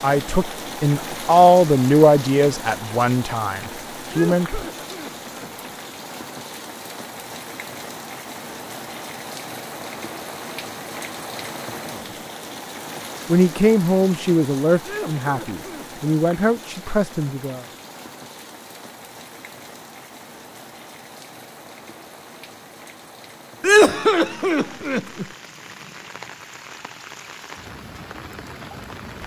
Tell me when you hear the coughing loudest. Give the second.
24 s.